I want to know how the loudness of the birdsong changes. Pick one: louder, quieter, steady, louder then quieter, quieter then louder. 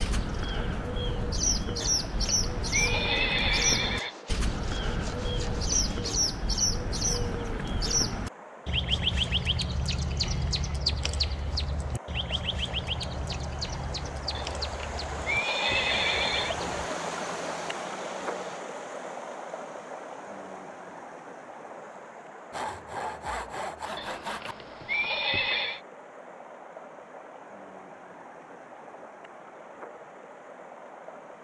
quieter.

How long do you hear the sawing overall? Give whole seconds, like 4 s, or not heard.
6 s.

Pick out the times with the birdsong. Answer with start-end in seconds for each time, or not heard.
0.0-16.9.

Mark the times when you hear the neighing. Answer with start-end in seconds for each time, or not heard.
1.8-4.2, 14.3-16.6, 23.9-25.8.